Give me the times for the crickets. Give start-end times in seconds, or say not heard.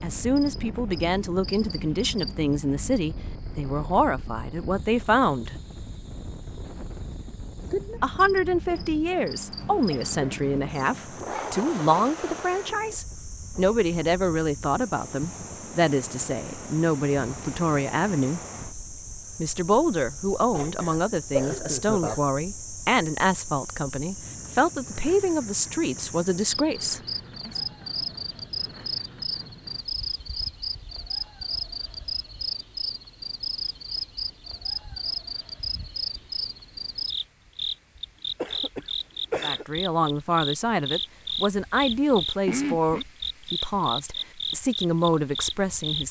0.0-46.0.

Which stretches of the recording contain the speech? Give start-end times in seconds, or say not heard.
0.0-5.5, 8.0-18.4, 19.4-27.5, 39.4-46.0.